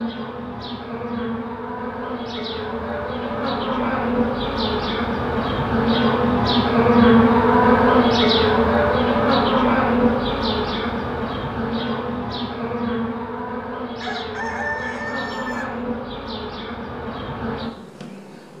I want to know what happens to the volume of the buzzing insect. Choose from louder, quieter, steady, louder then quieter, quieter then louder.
louder then quieter.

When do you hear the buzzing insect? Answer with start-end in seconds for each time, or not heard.
0.0-18.5.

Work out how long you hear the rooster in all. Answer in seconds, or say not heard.
2 s.